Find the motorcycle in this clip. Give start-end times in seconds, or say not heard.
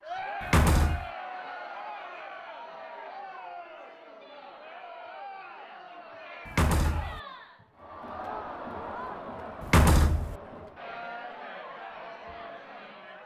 not heard.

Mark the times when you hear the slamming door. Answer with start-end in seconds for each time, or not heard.
0.4-1.1, 6.5-7.2, 9.6-10.3.